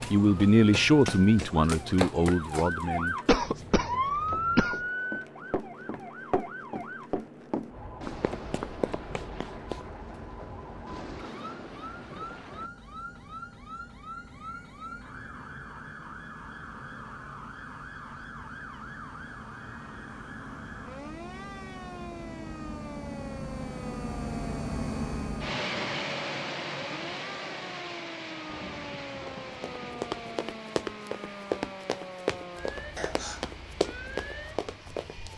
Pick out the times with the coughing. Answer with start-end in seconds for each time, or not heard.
3.2-4.8, 33.0-33.6.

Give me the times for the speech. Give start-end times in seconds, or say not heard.
0.1-3.6.